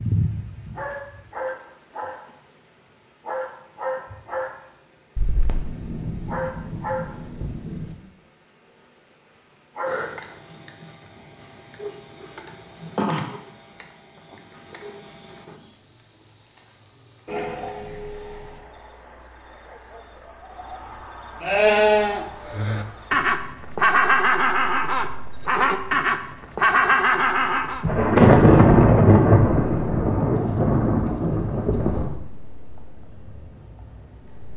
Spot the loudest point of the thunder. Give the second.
28 s.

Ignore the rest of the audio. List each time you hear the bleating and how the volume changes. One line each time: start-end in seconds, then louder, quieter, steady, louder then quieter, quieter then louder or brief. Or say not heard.
21.4-27.9 steady.